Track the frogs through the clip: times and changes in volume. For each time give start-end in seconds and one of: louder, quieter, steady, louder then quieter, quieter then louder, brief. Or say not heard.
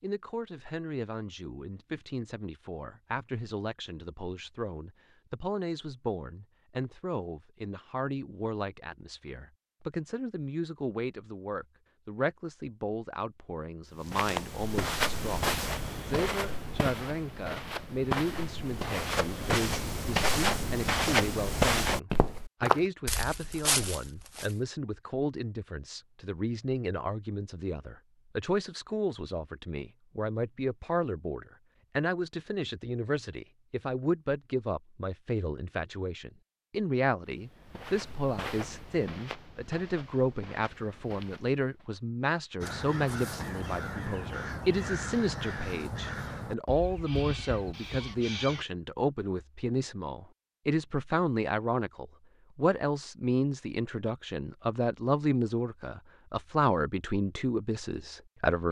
not heard.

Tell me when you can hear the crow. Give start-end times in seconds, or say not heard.
42.6-48.6.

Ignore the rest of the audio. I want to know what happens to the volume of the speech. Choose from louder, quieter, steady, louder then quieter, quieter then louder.
louder.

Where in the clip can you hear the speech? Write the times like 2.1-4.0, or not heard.
0.0-58.6.